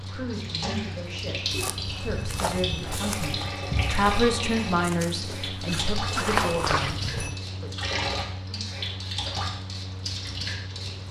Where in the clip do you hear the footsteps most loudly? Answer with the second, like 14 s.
6 s.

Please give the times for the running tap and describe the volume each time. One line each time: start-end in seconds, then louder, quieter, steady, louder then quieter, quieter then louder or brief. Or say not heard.
0.0-11.0 steady.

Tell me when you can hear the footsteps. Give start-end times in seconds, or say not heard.
1.5-7.3.